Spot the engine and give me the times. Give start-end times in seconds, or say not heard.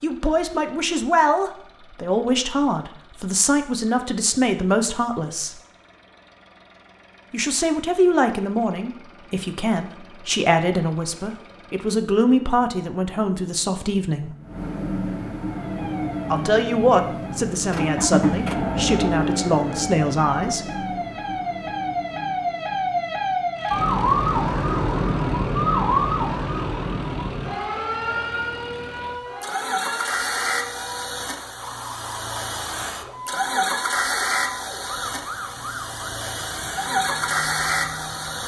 0.0-38.4.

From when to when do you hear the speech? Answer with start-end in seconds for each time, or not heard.
0.0-5.5, 7.3-14.3, 16.3-20.6.